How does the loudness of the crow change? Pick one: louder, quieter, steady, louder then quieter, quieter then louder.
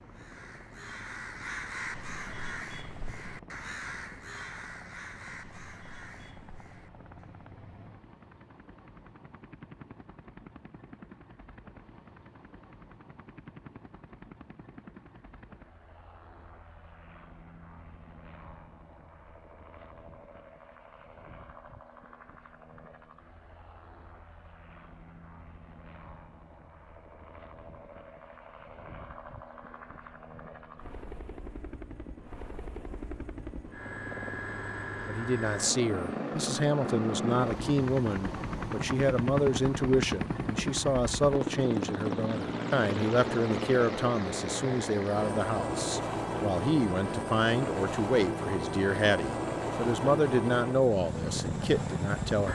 quieter.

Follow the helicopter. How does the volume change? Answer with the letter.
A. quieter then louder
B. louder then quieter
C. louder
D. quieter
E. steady
C.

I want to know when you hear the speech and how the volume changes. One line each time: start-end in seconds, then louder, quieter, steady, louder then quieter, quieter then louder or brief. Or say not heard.
35.0-52.5 steady.